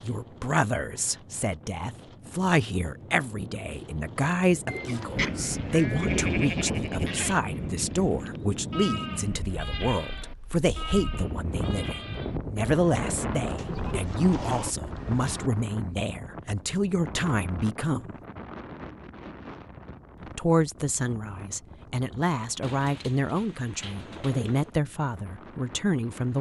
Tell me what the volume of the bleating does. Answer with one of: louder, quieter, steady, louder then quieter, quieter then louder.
quieter.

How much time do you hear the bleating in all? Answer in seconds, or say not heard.
9 s.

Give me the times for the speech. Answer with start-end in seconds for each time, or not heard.
0.0-18.1, 20.4-26.3.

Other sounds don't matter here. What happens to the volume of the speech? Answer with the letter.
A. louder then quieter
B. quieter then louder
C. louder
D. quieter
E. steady
E.